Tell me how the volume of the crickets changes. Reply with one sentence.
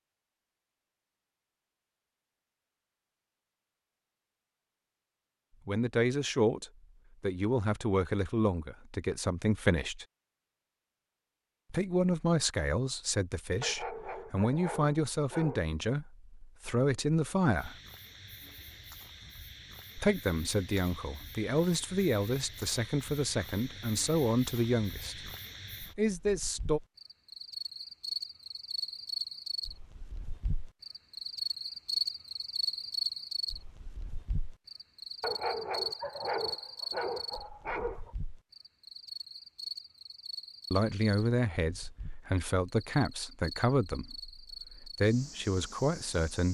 The loudness of the crickets goes up, then down.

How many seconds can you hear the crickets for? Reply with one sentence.
The crickets can be heard for 29 seconds in total.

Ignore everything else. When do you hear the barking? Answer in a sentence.
The barking can be heard from 13.6 to 15.7 s and from 35.2 to 38.1 s.